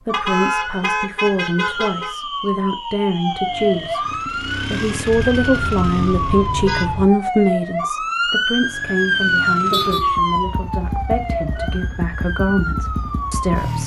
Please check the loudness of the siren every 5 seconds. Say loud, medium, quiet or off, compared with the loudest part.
medium, loud, loud.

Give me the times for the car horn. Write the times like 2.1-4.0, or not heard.
0.1-2.1, 5.0-7.0, 9.7-10.1.